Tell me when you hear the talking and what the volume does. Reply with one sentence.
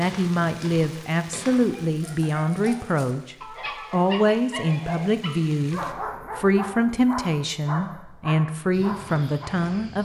The talking can be heard from 0.0 to 9.9 s, at a steady volume.